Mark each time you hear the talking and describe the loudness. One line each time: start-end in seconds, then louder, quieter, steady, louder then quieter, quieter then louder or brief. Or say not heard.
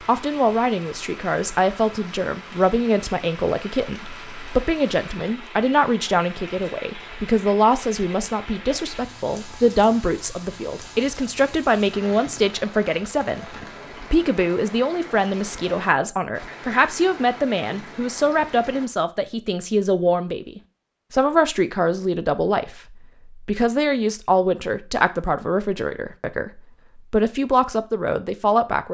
0.1-28.8 steady.